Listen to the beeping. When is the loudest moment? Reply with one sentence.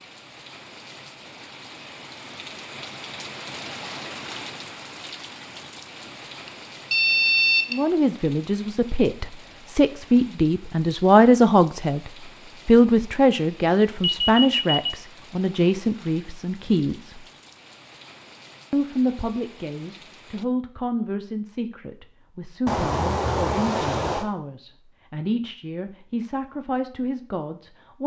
The loudest moment of the beeping is at 7 seconds.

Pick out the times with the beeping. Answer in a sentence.
You can hear the beeping from 6.5 to 7.8 s, from 14.0 to 14.9 s and from 22.6 to 24.2 s.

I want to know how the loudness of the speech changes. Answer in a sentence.
The volume of the speech goes down.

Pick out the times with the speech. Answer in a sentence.
The speech can be heard from 7.7 to 17.2 s and from 18.7 to 28.0 s.